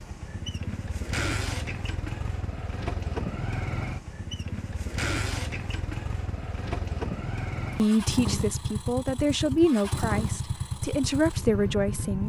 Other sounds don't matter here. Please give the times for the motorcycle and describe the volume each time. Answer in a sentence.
The motorcycle can be heard from 0.0 to 12.2 s, at a steady volume.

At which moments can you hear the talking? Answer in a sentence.
The talking can be heard from 7.8 to 12.2 s.